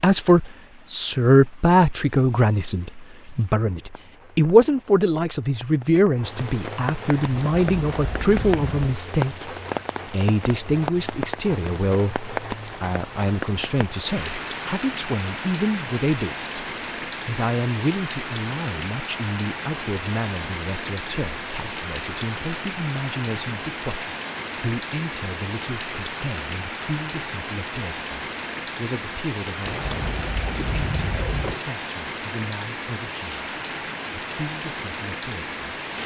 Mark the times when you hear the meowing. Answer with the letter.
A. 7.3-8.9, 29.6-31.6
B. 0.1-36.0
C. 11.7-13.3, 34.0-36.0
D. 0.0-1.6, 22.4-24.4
A.